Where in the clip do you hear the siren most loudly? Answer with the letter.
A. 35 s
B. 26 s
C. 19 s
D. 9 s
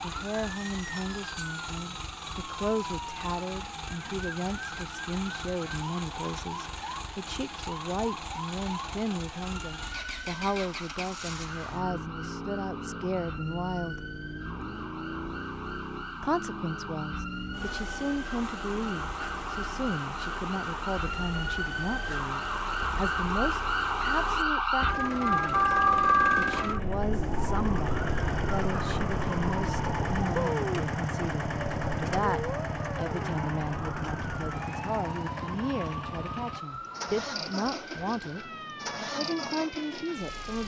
B.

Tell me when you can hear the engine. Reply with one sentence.
The engine can be heard from 0.0 to 40.6 s.